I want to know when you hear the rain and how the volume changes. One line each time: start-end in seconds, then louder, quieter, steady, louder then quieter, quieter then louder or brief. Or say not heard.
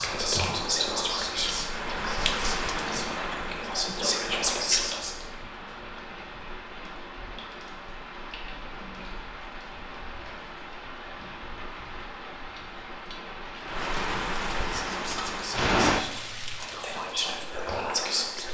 0.0-18.4 quieter then louder.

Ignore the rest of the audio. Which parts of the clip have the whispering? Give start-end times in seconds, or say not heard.
0.0-5.2, 14.6-18.4.